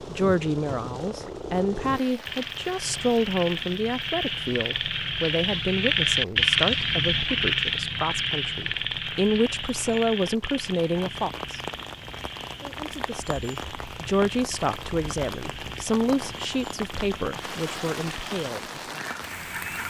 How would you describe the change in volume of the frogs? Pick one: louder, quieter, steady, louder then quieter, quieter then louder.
louder then quieter.